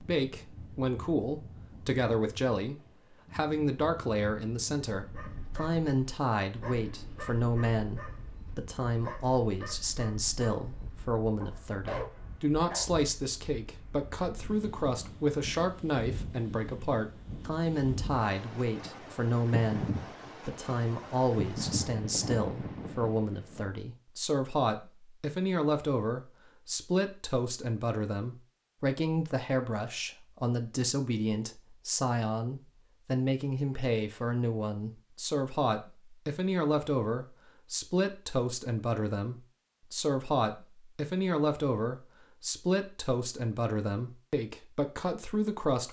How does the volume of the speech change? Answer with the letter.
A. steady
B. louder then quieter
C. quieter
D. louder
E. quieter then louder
A.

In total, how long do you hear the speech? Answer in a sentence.
You can hear the speech for 46 seconds altogether.